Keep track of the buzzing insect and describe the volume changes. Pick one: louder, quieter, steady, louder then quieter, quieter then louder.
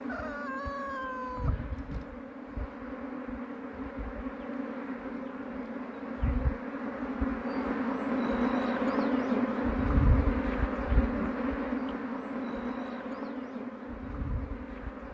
louder then quieter.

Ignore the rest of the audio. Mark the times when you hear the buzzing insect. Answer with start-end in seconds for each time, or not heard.
0.0-15.1.